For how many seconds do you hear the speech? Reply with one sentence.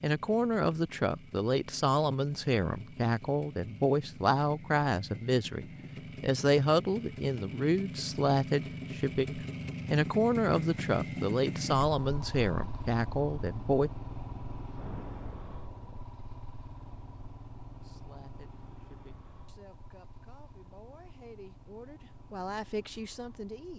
You can hear the speech for 20 seconds altogether.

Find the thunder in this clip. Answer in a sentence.
You can hear the thunder from 14.7 to 16.1 s.